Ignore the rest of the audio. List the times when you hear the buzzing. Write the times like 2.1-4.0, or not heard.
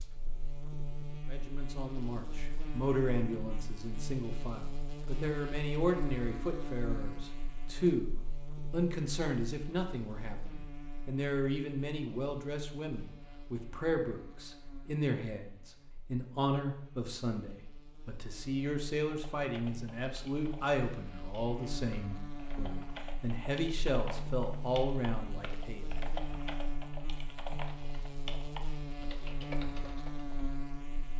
0.0-31.1.